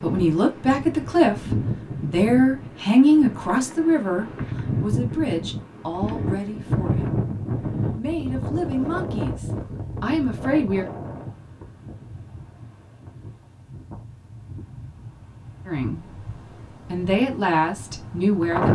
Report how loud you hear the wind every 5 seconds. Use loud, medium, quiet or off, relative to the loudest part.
loud, loud, medium, loud.